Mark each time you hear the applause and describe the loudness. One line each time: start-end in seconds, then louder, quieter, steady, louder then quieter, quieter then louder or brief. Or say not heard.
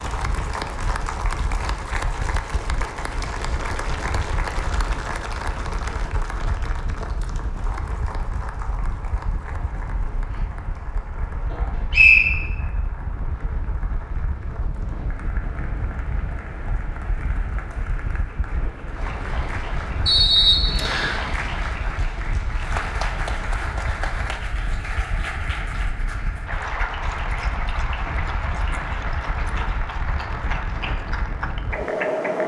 0.0-32.4 quieter then louder.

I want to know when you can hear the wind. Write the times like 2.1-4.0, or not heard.
0.0-32.4.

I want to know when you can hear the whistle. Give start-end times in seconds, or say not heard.
11.5-12.3, 20.1-21.2.